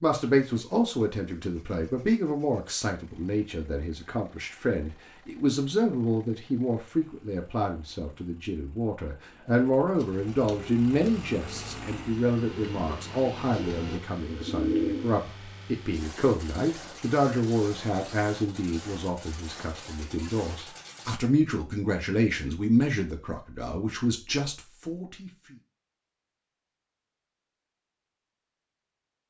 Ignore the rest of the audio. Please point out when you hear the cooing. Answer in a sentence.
The cooing can be heard from 9.3 to 15.2 s.